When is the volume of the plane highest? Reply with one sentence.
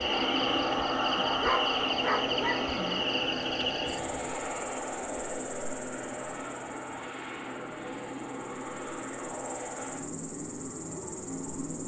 The volume of the plane peaks at 1 second.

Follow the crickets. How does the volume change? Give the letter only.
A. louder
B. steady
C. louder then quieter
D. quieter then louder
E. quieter
D.